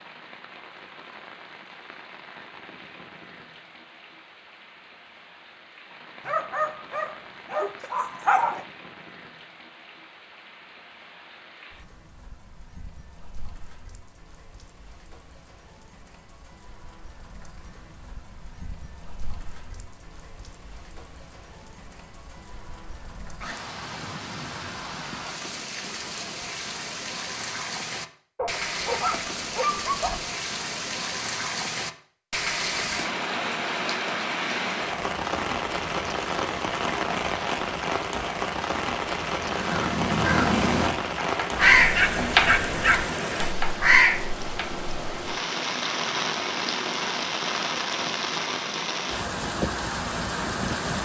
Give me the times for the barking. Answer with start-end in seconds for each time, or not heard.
6.2-8.7, 28.4-30.2, 41.6-43.1.